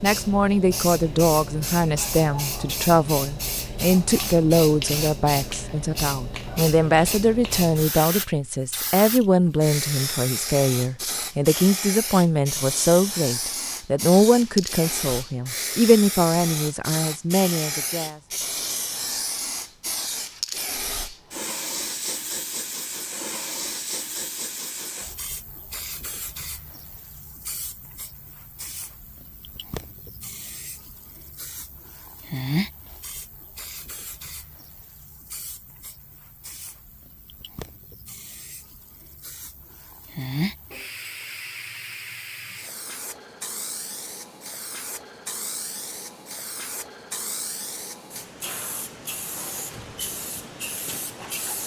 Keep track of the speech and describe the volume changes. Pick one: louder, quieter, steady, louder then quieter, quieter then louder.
steady.